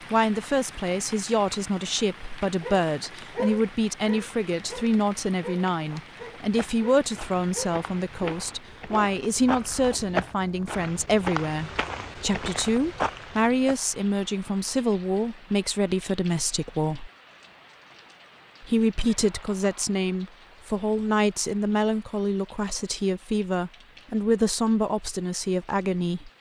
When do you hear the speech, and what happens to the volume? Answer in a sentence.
You can hear the speech from 0.1 to 17.1 s, at a steady volume; and from 18.6 to 26.3 s, at a steady volume.